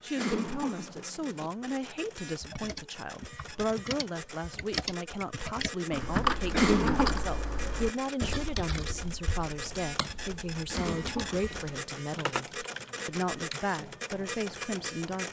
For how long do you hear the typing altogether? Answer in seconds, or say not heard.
11 s.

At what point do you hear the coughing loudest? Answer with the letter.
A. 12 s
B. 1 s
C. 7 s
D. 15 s
C.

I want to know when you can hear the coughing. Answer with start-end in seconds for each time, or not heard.
0.1-1.5, 6.5-7.2, 10.7-12.0.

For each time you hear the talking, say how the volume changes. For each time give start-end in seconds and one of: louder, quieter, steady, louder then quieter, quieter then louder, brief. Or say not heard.
0.0-15.2 steady.